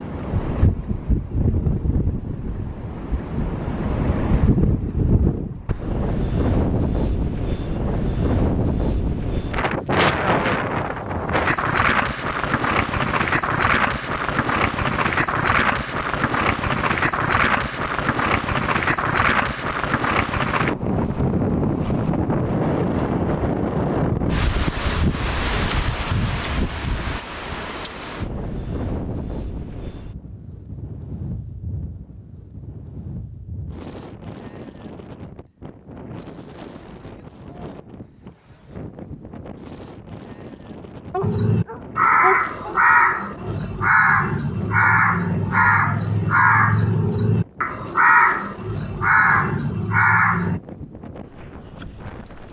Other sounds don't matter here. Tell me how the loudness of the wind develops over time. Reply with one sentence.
The volume of the wind goes down.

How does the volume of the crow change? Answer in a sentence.
The volume of the crow stays about the same.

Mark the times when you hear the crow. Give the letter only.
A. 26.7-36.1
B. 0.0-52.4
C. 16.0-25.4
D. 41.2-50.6
D.